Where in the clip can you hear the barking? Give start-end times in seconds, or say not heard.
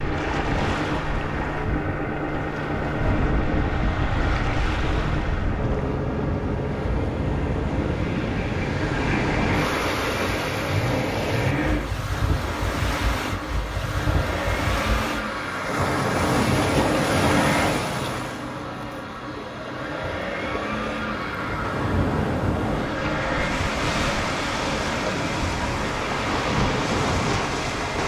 not heard.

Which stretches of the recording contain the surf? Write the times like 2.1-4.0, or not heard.
0.0-28.0.